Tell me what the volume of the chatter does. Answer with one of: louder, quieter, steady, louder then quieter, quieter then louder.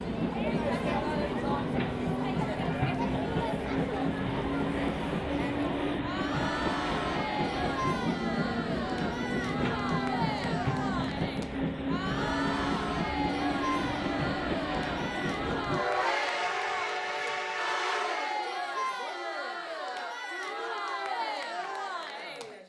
steady.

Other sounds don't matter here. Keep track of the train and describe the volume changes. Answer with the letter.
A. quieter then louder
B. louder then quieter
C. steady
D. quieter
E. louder
C.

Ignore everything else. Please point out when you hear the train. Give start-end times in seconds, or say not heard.
0.0-18.6.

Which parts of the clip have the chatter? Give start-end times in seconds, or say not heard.
0.0-22.6.